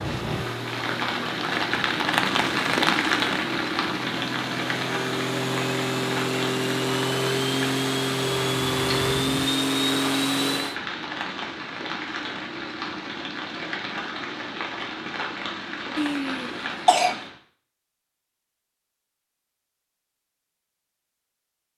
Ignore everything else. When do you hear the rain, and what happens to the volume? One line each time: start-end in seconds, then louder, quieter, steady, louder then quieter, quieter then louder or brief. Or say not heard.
0.0-17.4 quieter.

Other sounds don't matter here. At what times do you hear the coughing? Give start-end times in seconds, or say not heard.
15.9-17.1.